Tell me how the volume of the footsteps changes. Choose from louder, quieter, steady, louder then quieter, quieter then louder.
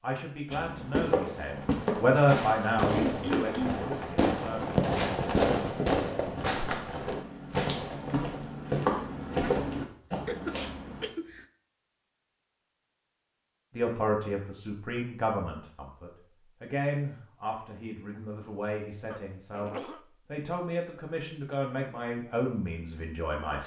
quieter then louder.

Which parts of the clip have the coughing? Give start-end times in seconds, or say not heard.
3.0-3.9, 10.2-11.4, 19.1-20.0.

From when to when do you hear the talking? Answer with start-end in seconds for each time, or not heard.
0.0-4.8, 13.8-23.6.